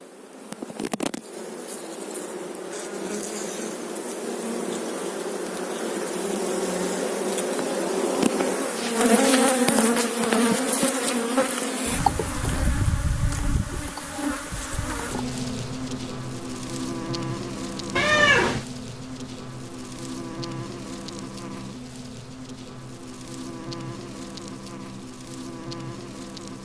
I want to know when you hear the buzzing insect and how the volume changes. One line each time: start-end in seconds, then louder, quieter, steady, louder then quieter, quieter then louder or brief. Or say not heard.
0.0-26.5 louder then quieter.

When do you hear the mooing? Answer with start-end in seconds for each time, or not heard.
not heard.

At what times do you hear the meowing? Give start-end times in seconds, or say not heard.
17.9-18.6.